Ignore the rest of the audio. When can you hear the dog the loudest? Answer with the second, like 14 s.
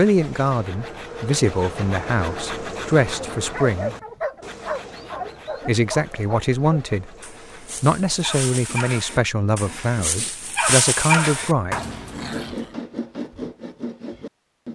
11 s.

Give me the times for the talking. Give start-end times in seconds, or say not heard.
0.0-4.0, 5.7-7.2, 7.8-11.8.